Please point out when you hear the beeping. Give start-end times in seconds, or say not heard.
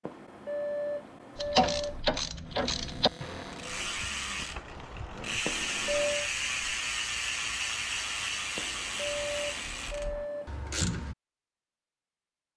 0.0-2.0, 5.5-6.3, 8.6-10.8.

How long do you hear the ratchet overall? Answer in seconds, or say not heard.
10 s.